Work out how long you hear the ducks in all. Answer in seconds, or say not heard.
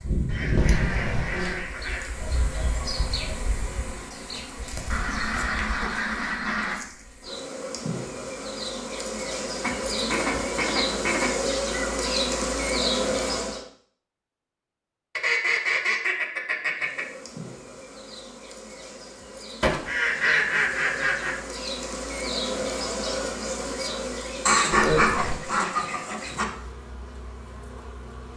11 s.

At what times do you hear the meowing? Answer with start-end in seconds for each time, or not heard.
0.6-1.7, 24.9-25.4.